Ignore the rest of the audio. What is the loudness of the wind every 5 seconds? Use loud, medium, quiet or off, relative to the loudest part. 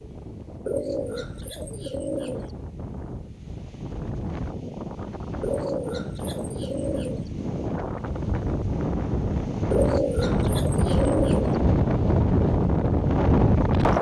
quiet, medium, loud.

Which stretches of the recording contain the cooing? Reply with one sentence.
You can hear the cooing from 0.7 to 2.5 s, from 5.4 to 7.3 s and from 9.7 to 11.6 s.